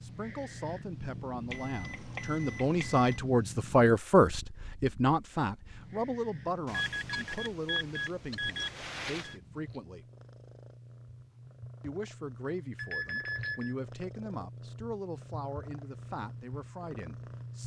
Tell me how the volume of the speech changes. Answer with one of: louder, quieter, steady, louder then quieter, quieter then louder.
louder then quieter.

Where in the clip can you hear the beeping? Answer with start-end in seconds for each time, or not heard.
1.5-3.2, 6.7-9.3, 12.8-13.8.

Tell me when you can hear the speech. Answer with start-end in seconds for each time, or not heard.
0.0-10.1, 11.8-17.6.